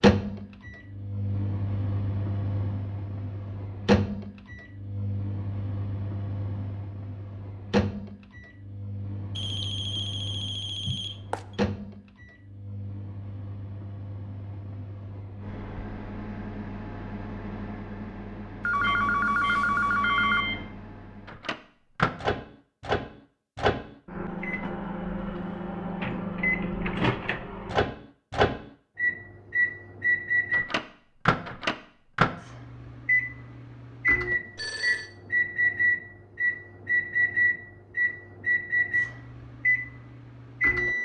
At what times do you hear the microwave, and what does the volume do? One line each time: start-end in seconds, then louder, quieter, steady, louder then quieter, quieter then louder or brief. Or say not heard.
0.0-40.9 quieter then louder.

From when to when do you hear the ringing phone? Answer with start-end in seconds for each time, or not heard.
9.3-11.4, 18.6-20.4, 34.5-35.1.